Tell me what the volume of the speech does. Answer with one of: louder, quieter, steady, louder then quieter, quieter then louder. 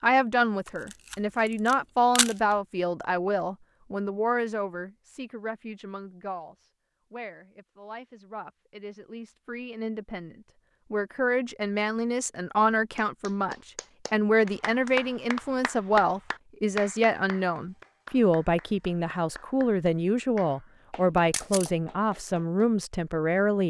quieter then louder.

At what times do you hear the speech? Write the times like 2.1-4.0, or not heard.
0.0-23.6.